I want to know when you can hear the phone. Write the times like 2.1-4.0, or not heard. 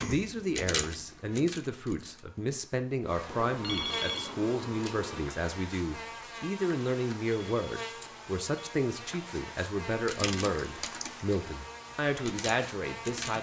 3.6-4.3, 7.2-8.7.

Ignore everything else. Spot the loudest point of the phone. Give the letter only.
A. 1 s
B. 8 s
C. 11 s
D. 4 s
D.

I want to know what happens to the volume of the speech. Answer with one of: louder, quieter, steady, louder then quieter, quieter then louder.
steady.